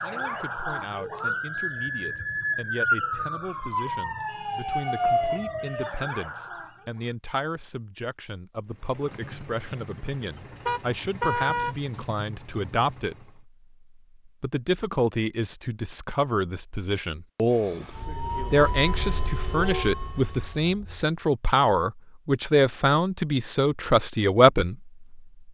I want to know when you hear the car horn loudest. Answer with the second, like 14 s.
11 s.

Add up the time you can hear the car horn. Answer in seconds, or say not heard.
4 s.